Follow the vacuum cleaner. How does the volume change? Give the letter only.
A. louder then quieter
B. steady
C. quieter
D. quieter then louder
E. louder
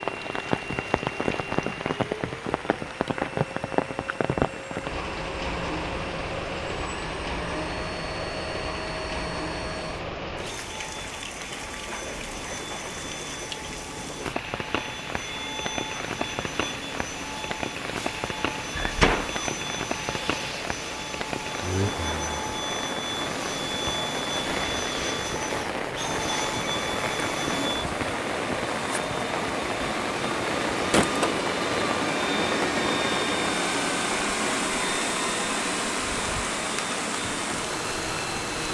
E.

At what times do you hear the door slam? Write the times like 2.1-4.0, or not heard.
18.7-19.5.